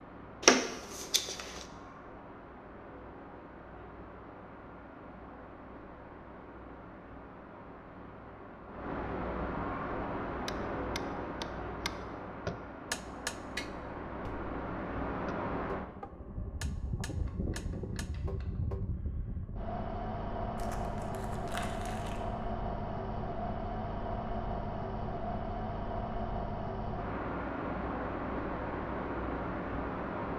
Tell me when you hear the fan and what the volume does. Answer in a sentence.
You can hear the fan from 0.0 to 30.3 s, getting louder.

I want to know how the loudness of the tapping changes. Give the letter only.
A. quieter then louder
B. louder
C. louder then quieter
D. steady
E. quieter
E.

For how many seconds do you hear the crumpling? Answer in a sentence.
The crumpling can be heard for 3 seconds in total.